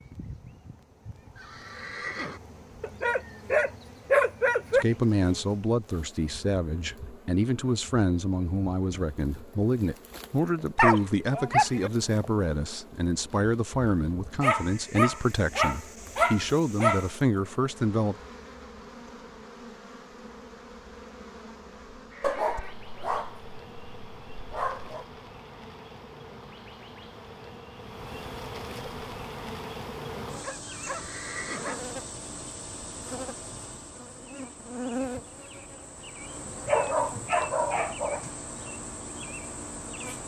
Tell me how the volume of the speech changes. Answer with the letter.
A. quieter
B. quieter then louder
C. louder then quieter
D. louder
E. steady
E.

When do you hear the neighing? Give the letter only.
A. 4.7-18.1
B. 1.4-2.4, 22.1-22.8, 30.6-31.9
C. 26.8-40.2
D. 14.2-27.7
B.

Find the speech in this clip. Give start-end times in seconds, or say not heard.
4.7-18.1.